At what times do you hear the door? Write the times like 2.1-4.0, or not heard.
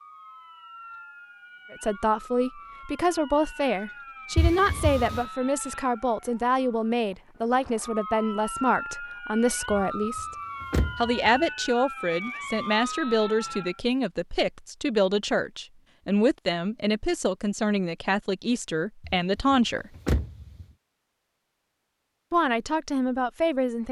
4.3-5.2, 9.7-11.4, 19.1-20.6.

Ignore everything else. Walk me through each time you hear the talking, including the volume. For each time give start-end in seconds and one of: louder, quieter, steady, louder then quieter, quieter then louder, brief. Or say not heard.
1.7-10.2 steady
11.0-19.9 steady
22.3-23.8 brief.